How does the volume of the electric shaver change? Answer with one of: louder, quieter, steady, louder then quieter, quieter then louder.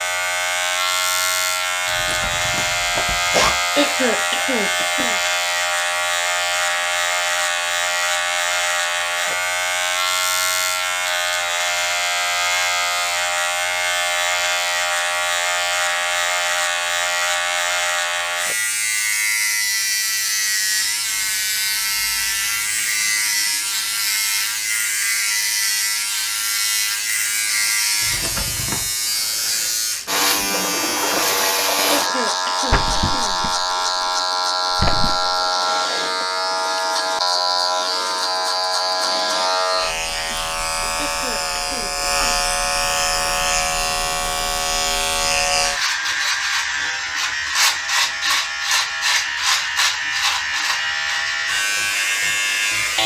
steady.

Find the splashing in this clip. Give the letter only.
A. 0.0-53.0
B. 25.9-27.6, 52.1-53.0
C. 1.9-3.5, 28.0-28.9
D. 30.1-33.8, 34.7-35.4
D.